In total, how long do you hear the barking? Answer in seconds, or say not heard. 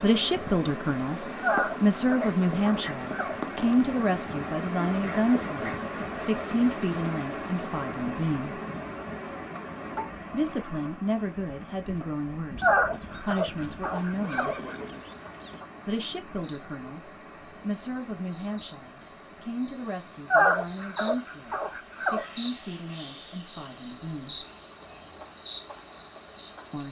6 s.